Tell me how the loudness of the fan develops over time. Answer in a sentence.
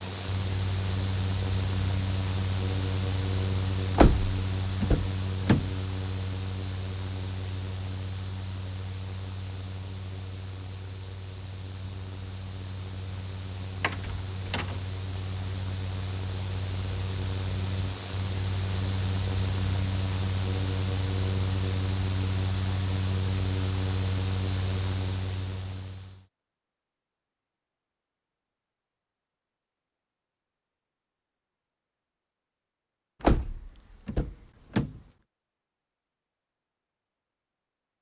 The volume of the fan goes down, then up.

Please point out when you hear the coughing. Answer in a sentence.
You can't hear the coughing here.